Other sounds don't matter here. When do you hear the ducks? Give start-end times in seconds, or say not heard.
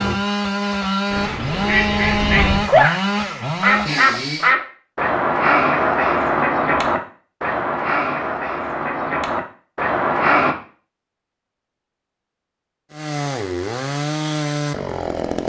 1.1-10.6.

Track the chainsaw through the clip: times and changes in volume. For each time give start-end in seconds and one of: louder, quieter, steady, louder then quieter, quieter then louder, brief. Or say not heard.
0.0-4.5 steady
12.9-15.4 brief.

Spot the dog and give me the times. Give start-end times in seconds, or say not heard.
not heard.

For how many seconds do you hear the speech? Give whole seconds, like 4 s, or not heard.
not heard.